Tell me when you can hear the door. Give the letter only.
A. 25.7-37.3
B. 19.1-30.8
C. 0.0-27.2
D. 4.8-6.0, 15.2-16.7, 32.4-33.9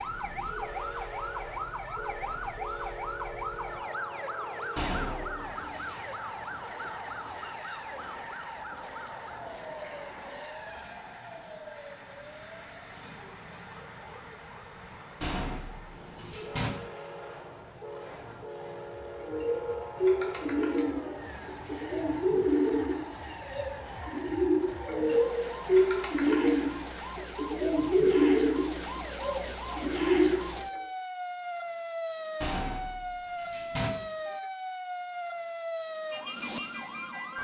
D.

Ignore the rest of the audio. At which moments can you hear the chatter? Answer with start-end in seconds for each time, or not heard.
not heard.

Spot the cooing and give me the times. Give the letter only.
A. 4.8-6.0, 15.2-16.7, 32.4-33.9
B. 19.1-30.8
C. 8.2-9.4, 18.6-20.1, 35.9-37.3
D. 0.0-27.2
B.